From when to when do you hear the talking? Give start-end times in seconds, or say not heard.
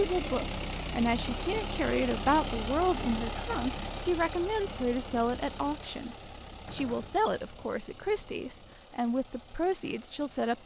0.0-10.6.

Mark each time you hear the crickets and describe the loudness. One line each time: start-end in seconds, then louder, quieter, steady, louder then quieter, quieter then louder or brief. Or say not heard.
not heard.